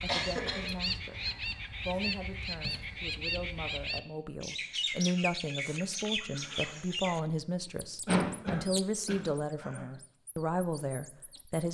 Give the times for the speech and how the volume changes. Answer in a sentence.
The speech can be heard briefly from 0.0 to 1.2 s; and from 1.9 to 11.7 s, getting louder.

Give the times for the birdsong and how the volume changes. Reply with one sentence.
You can hear the birdsong from 0.0 to 11.7 s, getting quieter.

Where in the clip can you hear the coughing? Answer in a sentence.
You can hear the coughing from 0.1 to 0.7 s and from 8.1 to 9.8 s.